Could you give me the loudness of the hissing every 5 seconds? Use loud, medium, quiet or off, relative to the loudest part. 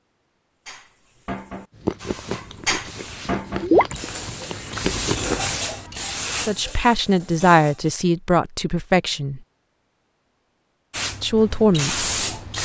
medium, loud, loud.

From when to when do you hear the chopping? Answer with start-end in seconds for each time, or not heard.
not heard.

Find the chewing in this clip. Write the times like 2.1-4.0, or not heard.
1.7-5.5.